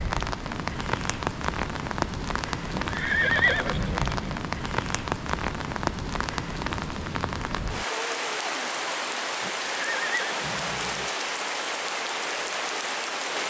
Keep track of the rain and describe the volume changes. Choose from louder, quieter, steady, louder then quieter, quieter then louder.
steady.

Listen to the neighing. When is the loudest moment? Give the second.
3 s.